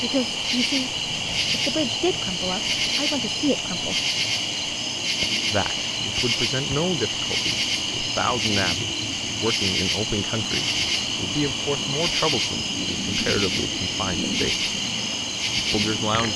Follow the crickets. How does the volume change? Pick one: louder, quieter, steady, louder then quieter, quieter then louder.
steady.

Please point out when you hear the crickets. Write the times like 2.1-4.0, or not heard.
0.0-16.3.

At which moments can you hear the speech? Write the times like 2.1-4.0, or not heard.
0.0-4.0, 5.5-14.7, 15.7-16.3.